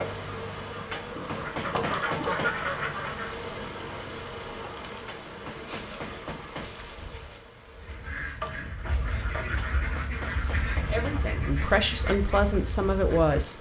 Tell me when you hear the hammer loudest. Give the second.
2 s.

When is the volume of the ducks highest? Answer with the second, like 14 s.
2 s.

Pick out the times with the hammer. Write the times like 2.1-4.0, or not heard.
0.9-2.6, 5.0-6.8, 9.6-11.3.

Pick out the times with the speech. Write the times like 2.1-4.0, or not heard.
10.4-13.5.